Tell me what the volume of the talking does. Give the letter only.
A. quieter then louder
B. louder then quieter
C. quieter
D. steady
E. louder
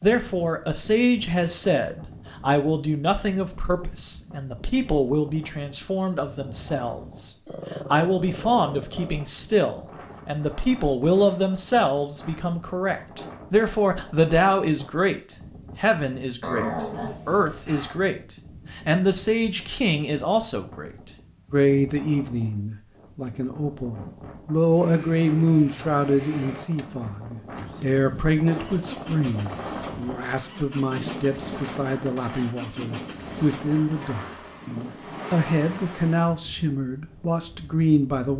D.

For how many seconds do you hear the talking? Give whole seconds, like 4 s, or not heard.
38 s.